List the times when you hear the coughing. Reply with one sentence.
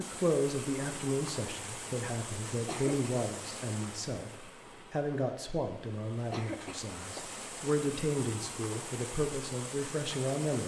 You can hear the coughing from 2.5 to 3.0 s and from 6.2 to 7.4 s.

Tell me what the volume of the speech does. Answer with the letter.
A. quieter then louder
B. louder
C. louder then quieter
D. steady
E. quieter
D.